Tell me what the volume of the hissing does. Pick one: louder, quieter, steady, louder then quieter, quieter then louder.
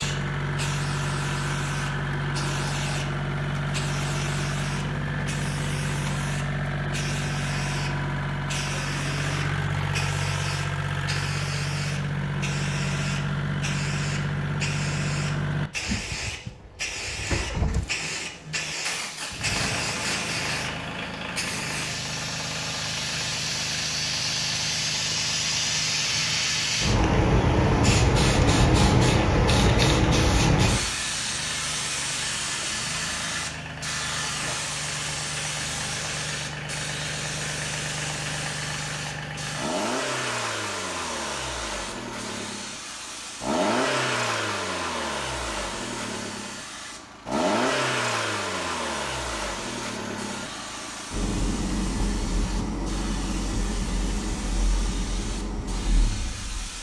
louder then quieter.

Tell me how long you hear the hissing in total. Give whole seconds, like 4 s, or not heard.
57 s.